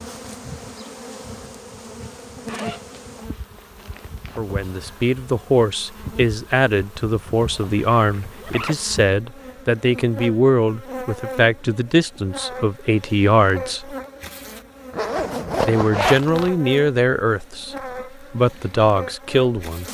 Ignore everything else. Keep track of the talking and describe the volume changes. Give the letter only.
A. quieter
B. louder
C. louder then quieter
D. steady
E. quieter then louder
D.